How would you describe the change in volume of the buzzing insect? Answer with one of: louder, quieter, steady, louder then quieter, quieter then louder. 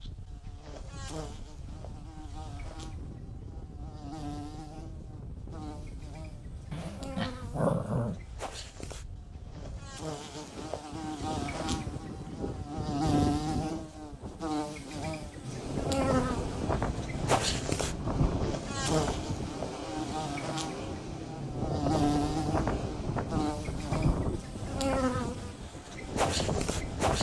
louder.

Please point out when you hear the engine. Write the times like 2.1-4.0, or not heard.
15.4-23.4.